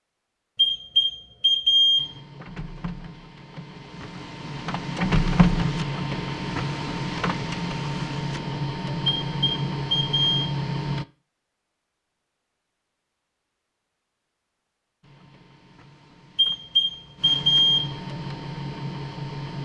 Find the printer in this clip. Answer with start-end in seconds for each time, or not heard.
1.9-11.1, 15.0-19.5.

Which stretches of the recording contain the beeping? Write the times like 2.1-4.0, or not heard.
0.6-2.1, 9.1-10.4, 16.4-17.9.